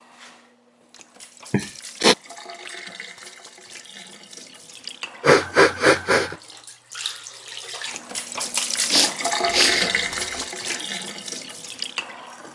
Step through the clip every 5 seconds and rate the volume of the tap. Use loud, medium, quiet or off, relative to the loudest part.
quiet, loud, loud.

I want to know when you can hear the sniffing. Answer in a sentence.
The sniffing can be heard from 1.5 to 2.1 s, from 5.2 to 6.3 s and from 8.9 to 10.8 s.